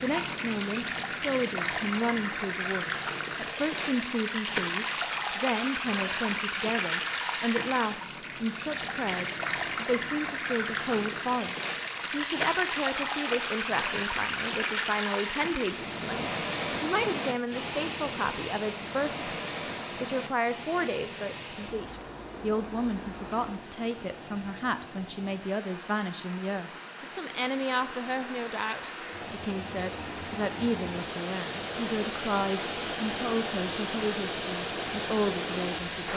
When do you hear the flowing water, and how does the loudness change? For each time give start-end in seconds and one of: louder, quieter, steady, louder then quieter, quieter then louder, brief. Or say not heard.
0.0-36.1 quieter then louder.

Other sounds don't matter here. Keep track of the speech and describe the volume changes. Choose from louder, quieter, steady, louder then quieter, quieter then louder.
steady.